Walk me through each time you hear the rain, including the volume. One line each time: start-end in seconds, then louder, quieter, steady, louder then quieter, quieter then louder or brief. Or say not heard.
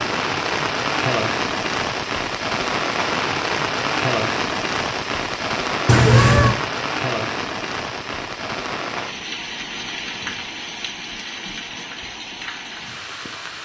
0.0-13.6 quieter.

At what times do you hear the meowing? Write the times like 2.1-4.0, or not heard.
5.8-6.5.